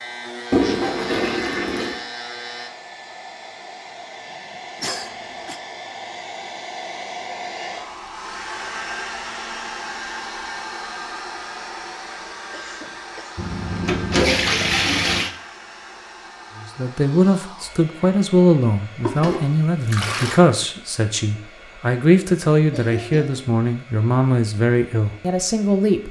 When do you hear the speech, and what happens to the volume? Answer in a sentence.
The speech can be heard from 16.6 to 26.0 s, at a steady volume.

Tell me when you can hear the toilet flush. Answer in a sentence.
You can hear the toilet flush from 0.5 to 2.0 s, from 13.3 to 15.3 s and from 19.0 to 20.4 s.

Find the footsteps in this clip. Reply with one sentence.
The footsteps can't be heard in this clip.